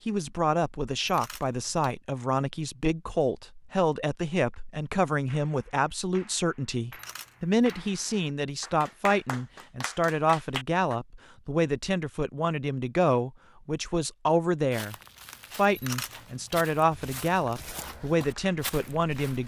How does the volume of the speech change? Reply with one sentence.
The loudness of the speech stays about the same.